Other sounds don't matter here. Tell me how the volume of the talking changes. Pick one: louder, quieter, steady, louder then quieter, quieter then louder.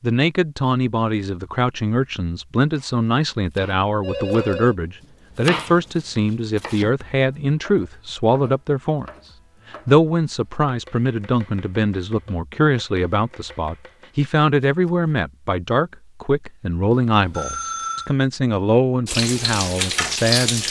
steady.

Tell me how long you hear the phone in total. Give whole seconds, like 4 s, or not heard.
2 s.